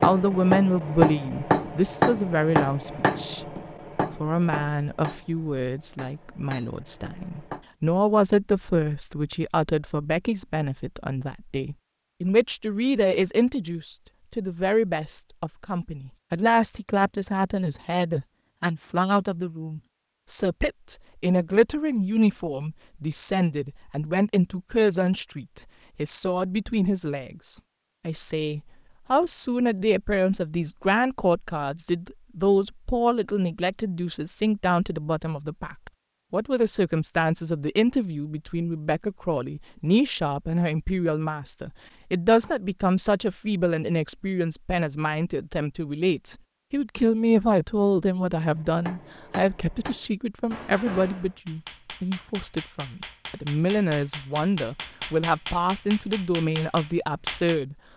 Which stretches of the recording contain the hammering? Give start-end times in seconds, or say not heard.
0.0-7.6, 48.4-57.6.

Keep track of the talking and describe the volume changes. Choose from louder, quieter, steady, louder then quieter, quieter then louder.
steady.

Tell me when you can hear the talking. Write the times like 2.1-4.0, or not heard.
0.0-3.5, 4.1-57.8.